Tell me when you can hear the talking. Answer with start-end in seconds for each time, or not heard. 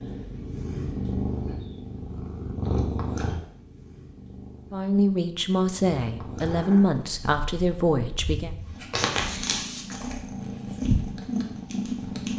4.7-8.5.